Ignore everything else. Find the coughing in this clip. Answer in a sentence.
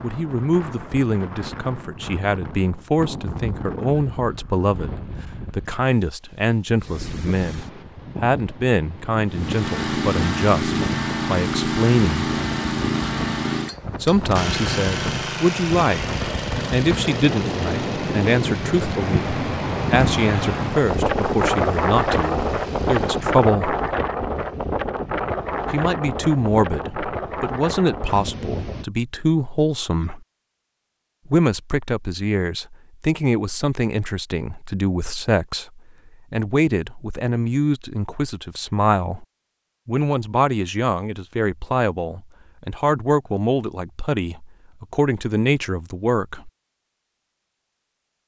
You can't hear the coughing here.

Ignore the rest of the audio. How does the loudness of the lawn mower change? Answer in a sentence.
The loudness of the lawn mower goes down.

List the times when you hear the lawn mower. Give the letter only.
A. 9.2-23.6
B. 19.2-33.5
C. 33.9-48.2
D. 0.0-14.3
A.